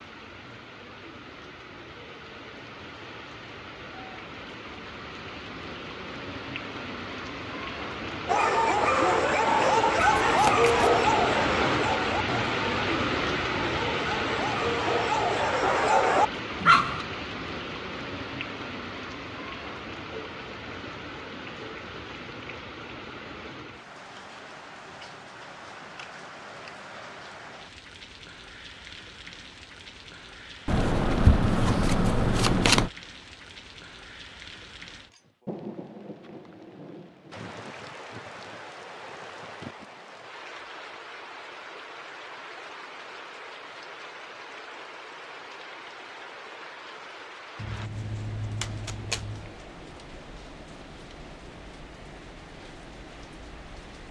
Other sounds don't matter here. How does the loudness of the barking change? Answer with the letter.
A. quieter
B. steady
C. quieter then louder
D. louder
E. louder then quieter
C.